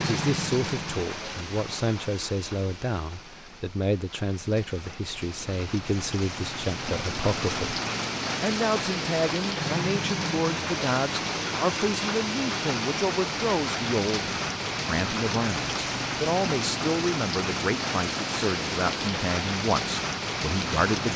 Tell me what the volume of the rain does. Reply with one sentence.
The loudness of the rain goes up.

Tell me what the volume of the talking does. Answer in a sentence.
The loudness of the talking stays about the same.